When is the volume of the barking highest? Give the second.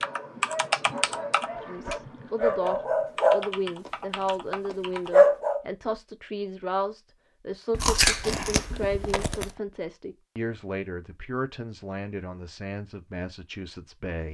5 s.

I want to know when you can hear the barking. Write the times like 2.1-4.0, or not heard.
0.0-3.9, 4.7-5.6.